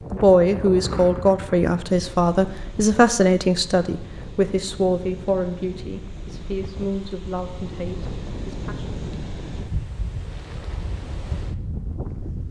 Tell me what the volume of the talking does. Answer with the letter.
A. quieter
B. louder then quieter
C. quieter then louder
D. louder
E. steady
A.